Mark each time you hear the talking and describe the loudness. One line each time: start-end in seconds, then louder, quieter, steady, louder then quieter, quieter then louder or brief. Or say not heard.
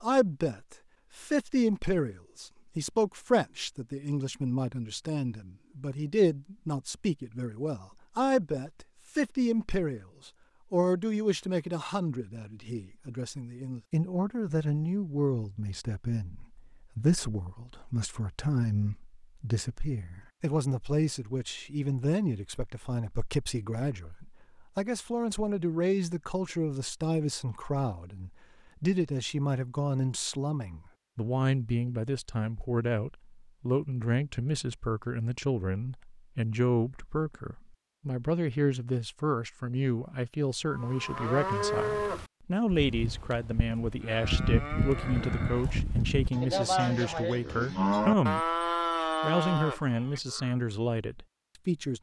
0.0-51.9 steady.